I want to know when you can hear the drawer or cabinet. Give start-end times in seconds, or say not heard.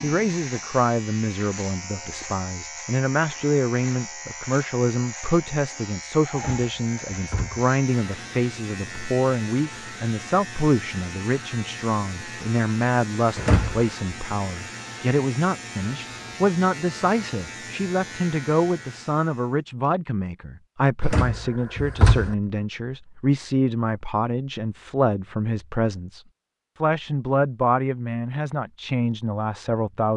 6.3-7.7, 13.3-13.8, 21.0-22.4.